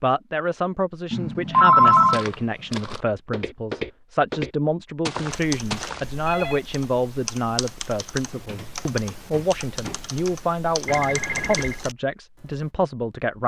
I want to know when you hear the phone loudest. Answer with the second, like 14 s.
2 s.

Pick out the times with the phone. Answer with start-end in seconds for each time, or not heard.
1.1-2.2, 5.2-6.6, 10.8-11.8.